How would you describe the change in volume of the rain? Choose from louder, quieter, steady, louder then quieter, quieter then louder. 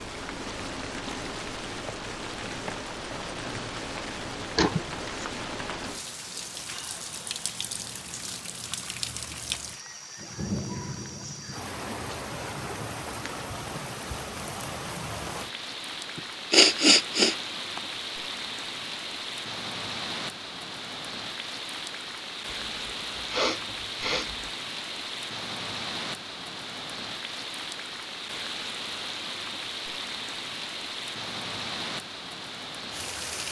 steady.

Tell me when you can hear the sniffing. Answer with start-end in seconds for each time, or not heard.
4.5-5.2, 16.1-17.8, 22.5-24.5.